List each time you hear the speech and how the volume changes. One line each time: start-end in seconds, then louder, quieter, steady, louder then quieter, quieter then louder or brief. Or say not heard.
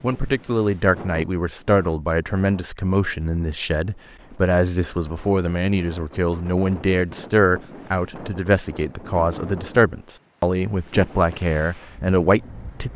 0.0-12.9 steady.